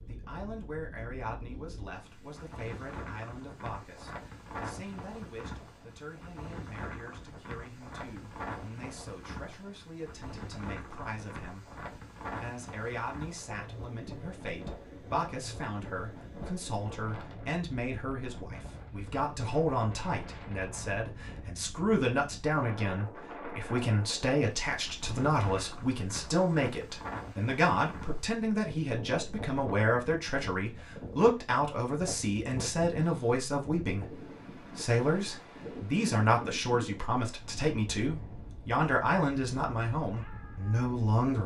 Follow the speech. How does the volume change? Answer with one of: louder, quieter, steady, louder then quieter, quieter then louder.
louder.